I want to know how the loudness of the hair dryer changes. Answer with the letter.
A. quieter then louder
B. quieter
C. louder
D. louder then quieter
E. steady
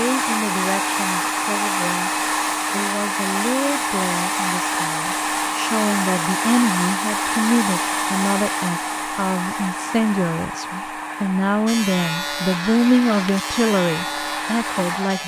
B.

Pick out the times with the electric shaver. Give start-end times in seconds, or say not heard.
11.7-15.2.